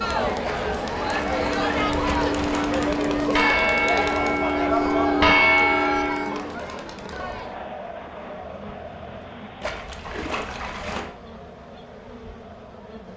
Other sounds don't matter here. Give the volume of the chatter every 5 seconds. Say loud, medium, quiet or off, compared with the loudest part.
loud, medium, quiet.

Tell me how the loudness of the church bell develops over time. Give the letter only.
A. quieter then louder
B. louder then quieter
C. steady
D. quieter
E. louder
E.